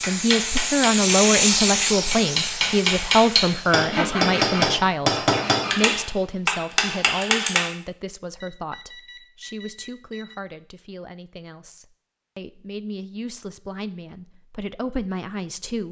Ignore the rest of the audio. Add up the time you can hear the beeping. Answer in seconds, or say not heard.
2 s.